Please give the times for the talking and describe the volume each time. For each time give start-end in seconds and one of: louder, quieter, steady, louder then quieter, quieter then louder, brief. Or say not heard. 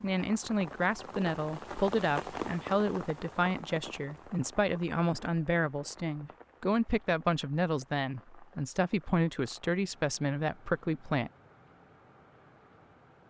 0.0-11.3 steady.